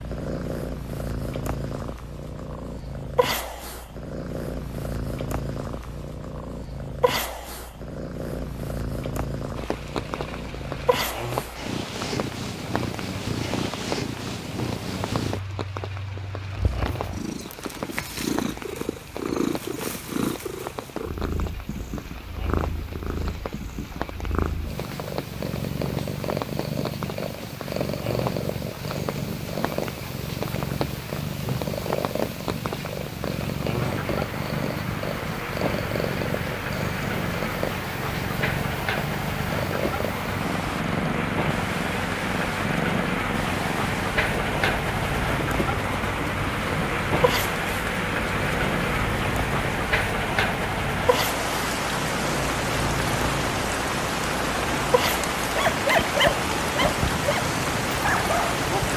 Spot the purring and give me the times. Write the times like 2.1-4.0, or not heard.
0.0-58.9.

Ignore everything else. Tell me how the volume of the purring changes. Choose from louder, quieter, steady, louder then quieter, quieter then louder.
steady.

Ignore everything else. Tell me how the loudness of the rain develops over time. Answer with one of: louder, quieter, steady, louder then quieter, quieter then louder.
louder.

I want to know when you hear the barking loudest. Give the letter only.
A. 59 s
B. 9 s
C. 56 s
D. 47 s
C.